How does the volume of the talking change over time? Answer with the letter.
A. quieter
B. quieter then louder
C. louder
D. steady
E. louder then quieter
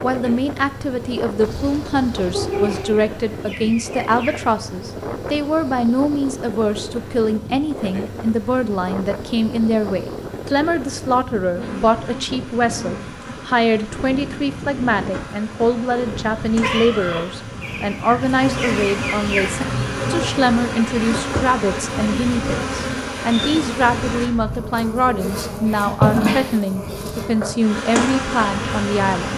D.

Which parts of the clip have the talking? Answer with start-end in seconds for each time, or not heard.
0.0-29.3.